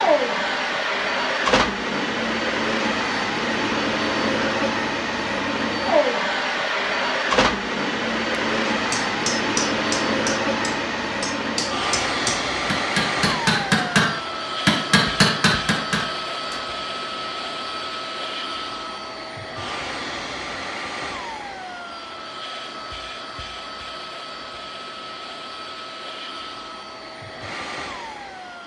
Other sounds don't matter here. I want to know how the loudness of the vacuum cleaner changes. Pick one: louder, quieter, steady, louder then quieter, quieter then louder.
quieter.